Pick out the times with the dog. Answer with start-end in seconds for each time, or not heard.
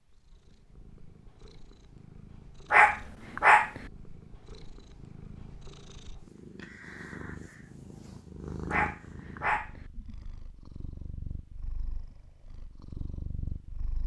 2.7-3.8, 8.7-9.8.